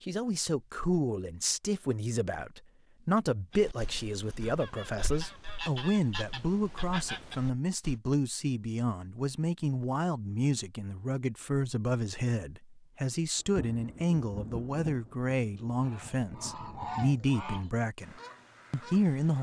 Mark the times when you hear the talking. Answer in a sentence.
The talking can be heard from 0.0 to 19.3 s.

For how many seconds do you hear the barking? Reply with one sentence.
You can't hear the barking here.